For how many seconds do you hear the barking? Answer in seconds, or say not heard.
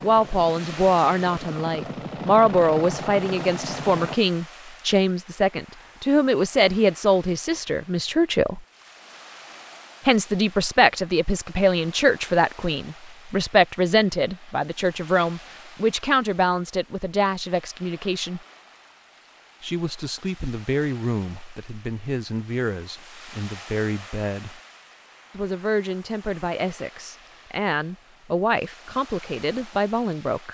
not heard.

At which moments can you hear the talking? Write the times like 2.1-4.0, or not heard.
0.0-8.6, 10.1-18.4, 19.6-24.6, 25.3-30.5.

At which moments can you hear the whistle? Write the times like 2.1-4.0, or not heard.
not heard.